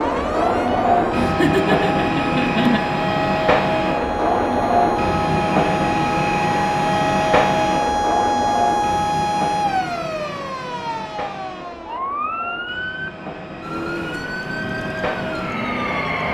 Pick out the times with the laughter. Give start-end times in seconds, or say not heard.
1.1-2.8.